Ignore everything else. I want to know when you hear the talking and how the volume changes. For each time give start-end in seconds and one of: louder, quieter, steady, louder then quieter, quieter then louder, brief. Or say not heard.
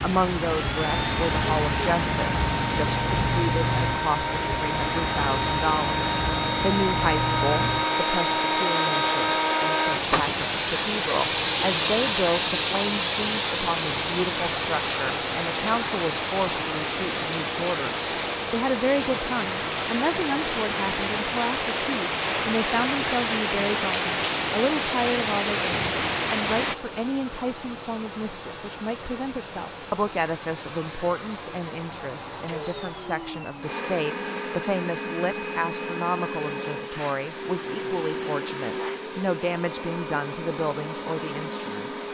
0.0-42.0 steady.